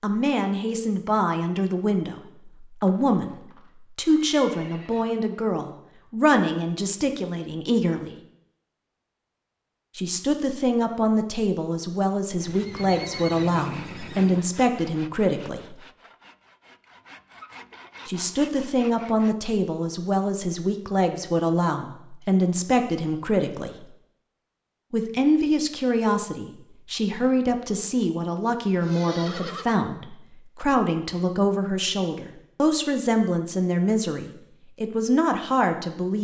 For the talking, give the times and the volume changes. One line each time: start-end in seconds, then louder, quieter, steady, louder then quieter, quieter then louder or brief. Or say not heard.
0.0-8.2 steady
9.9-15.8 steady
18.1-23.9 steady
24.9-36.1 steady.